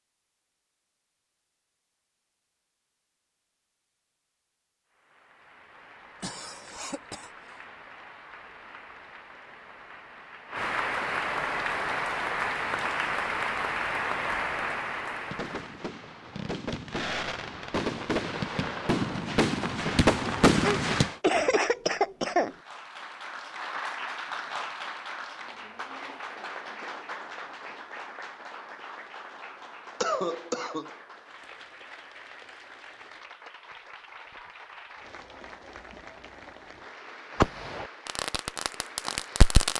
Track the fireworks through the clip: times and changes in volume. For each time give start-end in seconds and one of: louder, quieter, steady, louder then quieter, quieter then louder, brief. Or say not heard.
15.1-21.1 louder
37.4-39.7 brief.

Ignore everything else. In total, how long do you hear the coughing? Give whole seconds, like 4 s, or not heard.
4 s.